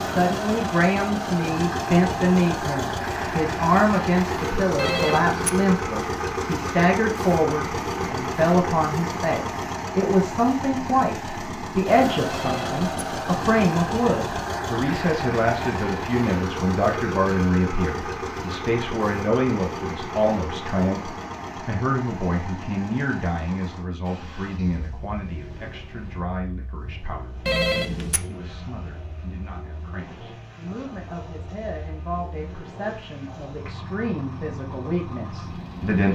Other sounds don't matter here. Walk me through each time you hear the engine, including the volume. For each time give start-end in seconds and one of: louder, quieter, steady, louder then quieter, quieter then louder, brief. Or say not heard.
0.0-36.0 quieter.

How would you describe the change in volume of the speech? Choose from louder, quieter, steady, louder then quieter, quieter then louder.
quieter.